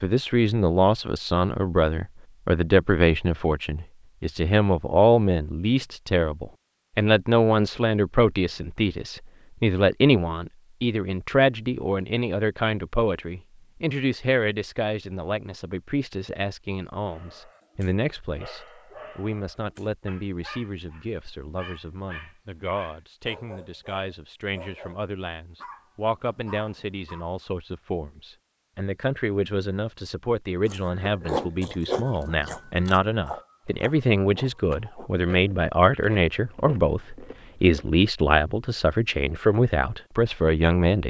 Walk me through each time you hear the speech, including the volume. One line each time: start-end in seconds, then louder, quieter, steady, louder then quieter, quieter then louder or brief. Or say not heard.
0.0-41.0 quieter then louder.